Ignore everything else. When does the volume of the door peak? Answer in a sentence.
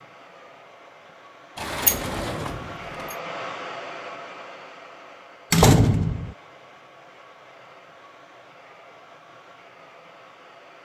The volume of the door peaks at 6 seconds.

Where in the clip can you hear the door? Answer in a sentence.
You can hear the door from 1.6 to 3.1 s and from 5.5 to 6.3 s.